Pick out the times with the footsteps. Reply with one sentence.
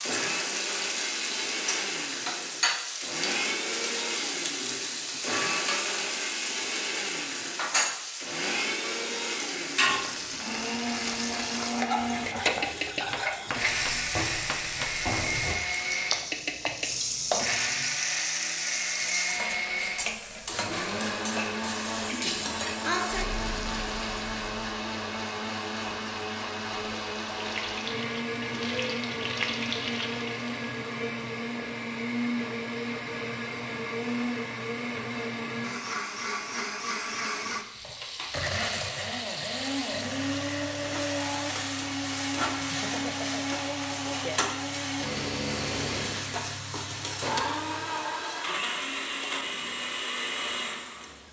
You can't hear the footsteps here.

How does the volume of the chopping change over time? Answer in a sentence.
The loudness of the chopping goes down.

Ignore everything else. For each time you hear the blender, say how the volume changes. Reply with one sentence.
You can hear the blender from 0.0 to 51.2 s, at a steady volume.